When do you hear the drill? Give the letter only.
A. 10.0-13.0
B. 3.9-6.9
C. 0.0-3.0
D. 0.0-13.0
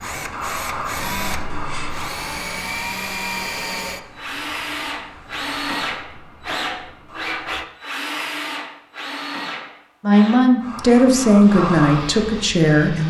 D.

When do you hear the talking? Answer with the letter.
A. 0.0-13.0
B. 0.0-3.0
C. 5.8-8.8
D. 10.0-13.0
D.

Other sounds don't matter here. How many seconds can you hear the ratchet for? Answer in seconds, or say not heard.
not heard.